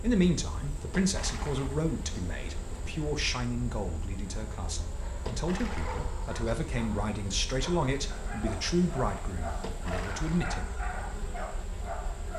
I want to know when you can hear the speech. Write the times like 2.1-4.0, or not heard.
0.0-10.8.